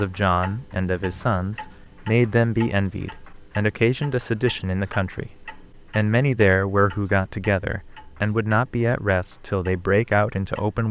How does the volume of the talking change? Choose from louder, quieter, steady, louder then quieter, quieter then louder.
steady.